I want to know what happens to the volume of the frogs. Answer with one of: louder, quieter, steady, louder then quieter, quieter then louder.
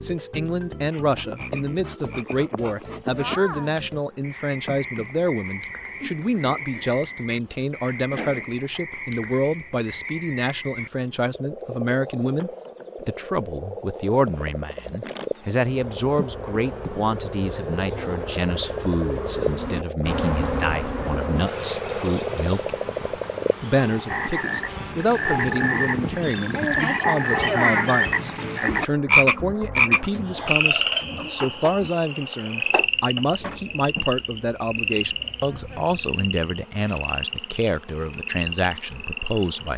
louder then quieter.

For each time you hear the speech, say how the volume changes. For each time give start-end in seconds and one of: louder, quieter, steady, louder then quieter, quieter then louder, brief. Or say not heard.
0.0-39.7 steady.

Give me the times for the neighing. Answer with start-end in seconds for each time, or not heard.
not heard.